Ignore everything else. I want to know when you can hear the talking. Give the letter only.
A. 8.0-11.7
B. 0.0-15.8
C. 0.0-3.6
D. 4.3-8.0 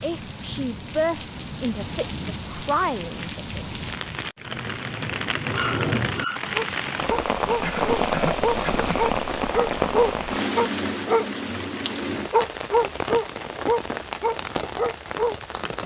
C.